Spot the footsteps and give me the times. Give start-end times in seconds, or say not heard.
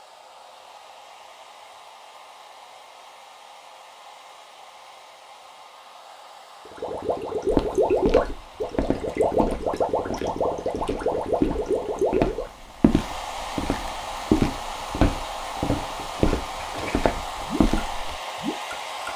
7.5-18.2.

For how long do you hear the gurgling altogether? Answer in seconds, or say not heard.
9 s.